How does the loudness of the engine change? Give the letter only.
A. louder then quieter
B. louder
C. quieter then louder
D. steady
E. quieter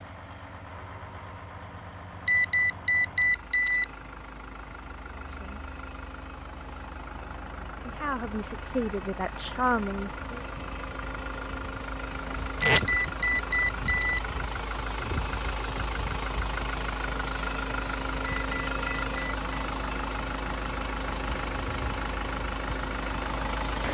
B.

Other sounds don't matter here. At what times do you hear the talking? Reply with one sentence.
You can hear the talking from 5.2 to 5.7 s and from 7.8 to 10.4 s.